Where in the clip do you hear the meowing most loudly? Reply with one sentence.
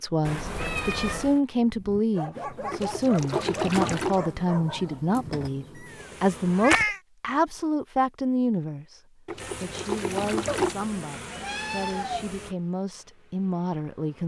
The volume of the meowing peaks at 7 seconds.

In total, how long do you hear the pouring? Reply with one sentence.
The pouring can be heard for 3 seconds in total.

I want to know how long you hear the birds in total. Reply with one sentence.
The birds can't be heard in this clip.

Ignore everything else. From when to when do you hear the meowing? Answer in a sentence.
You can hear the meowing from 0.2 to 1.4 s, from 5.8 to 7.0 s and from 10.4 to 12.2 s.